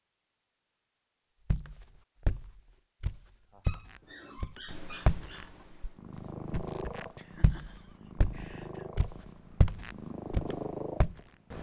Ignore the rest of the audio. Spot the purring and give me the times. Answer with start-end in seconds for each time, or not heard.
4.7-11.5.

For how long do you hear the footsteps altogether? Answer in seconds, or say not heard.
9 s.